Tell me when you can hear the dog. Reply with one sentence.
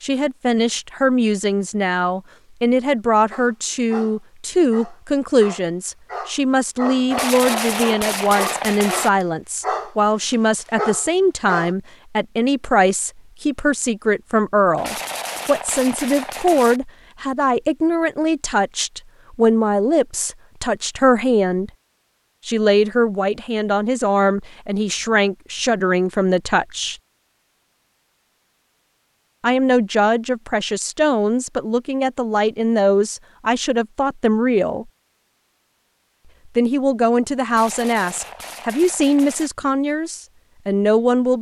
The dog can be heard from 3.3 to 11.8 s.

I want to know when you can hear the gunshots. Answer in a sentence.
You can hear the gunshots from 7.1 to 9.1 s, from 14.8 to 16.8 s and from 37.5 to 39.5 s.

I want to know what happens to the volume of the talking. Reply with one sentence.
The loudness of the talking stays about the same.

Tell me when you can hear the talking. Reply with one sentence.
You can hear the talking from 0.0 to 21.7 s, from 22.4 to 26.9 s, from 29.4 to 34.9 s and from 36.5 to 41.3 s.